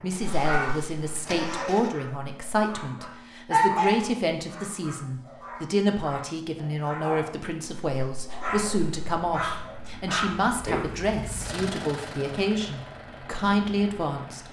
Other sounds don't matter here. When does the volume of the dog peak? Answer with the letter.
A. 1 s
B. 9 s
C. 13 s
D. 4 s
D.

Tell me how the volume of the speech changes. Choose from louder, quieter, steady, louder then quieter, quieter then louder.
steady.